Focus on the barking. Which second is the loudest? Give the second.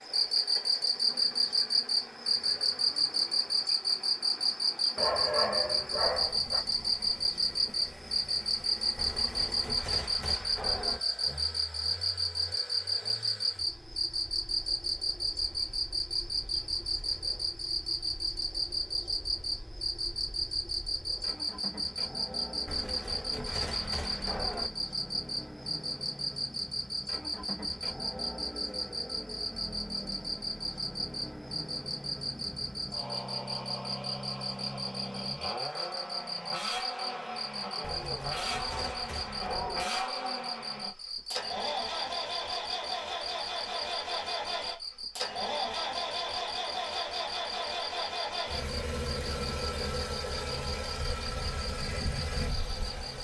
5 s.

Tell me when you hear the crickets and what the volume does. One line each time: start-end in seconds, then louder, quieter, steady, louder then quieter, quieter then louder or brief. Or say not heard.
0.0-53.1 quieter.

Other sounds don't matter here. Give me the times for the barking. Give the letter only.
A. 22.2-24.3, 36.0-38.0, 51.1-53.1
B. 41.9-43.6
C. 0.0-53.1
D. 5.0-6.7
D.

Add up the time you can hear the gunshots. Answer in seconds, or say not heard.
6 s.